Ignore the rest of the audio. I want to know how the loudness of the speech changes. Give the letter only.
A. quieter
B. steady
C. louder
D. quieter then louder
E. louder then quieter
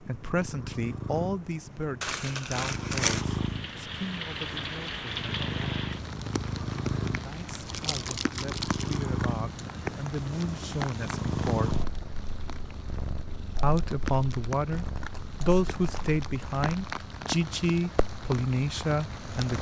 D.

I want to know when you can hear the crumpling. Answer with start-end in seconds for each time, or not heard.
2.0-3.2, 7.6-9.1, 14.7-16.8.